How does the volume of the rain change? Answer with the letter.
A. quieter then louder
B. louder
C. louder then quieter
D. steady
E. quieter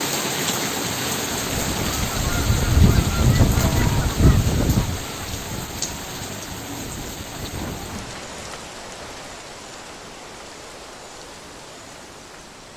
E.